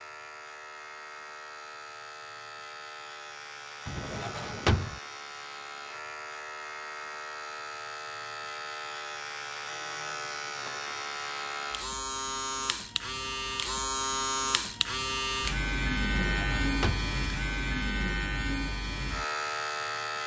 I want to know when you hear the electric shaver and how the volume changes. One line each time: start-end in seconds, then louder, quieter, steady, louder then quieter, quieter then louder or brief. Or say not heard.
0.0-20.2 louder.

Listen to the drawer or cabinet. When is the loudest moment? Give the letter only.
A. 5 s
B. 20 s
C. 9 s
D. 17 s
A.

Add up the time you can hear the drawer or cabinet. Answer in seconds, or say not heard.
2 s.